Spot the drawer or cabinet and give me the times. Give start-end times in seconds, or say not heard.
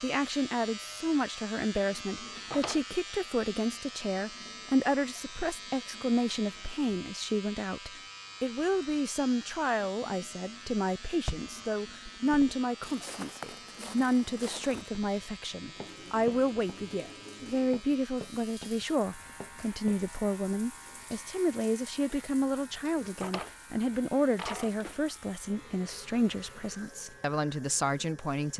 2.1-2.8, 23.0-25.0.